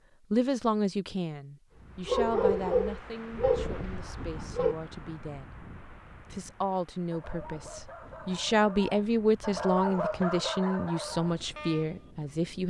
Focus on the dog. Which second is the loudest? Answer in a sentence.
The loudest moment of the dog is at 3 seconds.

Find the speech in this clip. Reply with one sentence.
The speech can be heard from 0.3 to 5.5 s and from 6.3 to 12.6 s.